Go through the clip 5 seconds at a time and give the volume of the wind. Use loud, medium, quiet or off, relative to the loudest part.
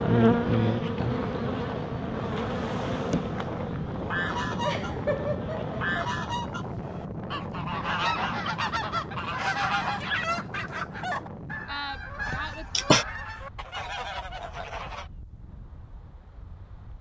loud, loud, medium, quiet.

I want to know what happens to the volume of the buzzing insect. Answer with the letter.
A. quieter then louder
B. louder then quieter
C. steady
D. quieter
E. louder
D.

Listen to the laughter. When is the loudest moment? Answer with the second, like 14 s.
13 s.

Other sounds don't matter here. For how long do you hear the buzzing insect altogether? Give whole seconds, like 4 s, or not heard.
6 s.